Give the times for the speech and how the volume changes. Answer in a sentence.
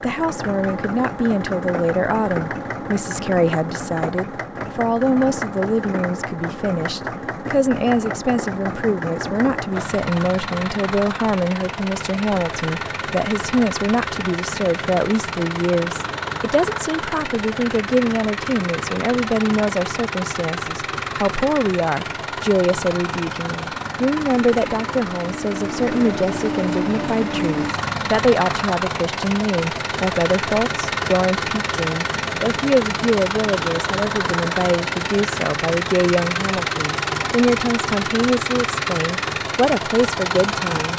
The speech can be heard from 0.0 to 40.9 s, at a steady volume.